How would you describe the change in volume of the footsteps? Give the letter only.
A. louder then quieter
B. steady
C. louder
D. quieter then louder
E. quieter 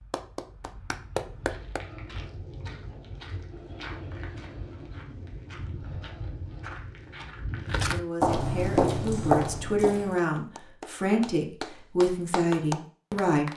C.